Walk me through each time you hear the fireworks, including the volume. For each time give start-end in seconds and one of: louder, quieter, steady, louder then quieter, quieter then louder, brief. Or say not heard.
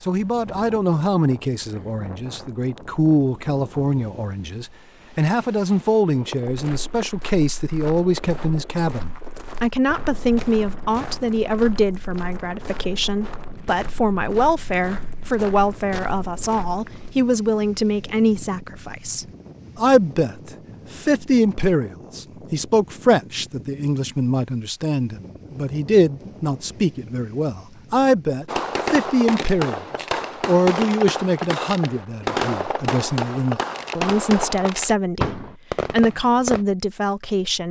28.4-36.6 steady.